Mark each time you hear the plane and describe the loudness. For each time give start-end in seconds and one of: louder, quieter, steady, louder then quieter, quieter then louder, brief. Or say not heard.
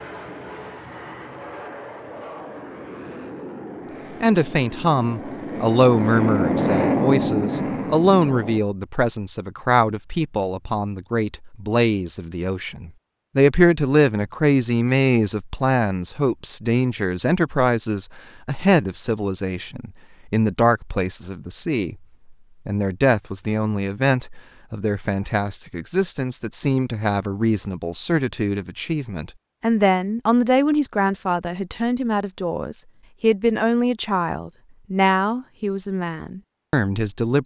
0.0-8.6 louder.